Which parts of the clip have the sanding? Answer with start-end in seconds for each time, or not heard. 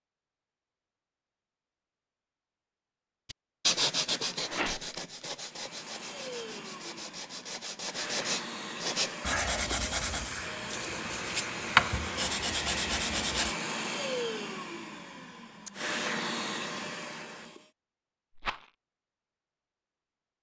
3.3-13.6.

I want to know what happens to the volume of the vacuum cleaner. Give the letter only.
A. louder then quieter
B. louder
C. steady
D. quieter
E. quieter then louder
B.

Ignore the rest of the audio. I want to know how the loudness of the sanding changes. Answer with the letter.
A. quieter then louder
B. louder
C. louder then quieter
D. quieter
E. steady
A.